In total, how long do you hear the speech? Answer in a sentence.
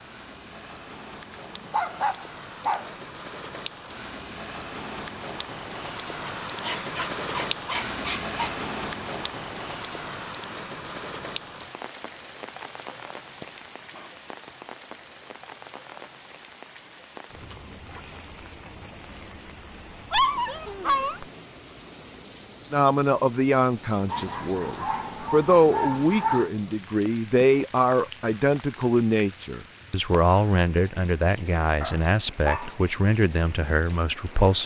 You can hear the speech for 12 seconds altogether.